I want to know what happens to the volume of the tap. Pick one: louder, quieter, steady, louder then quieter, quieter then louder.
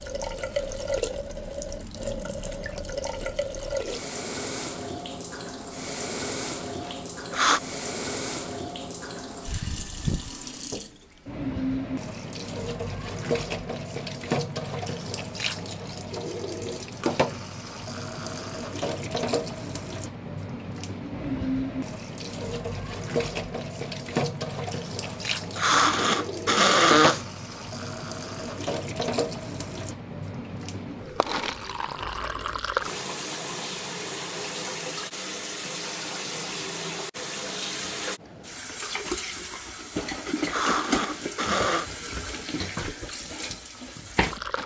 steady.